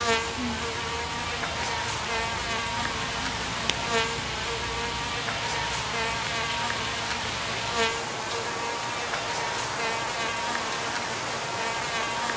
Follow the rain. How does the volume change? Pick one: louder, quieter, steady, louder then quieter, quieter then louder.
steady.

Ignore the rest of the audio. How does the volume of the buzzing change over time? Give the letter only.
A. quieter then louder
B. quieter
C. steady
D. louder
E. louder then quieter
C.